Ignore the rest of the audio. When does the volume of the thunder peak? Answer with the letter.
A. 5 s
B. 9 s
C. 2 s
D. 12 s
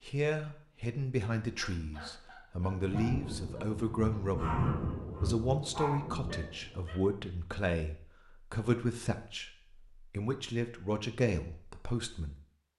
A.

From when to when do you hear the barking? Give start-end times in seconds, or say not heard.
1.6-7.0.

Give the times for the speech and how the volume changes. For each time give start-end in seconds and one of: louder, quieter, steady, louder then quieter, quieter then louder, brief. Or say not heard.
0.0-12.3 steady.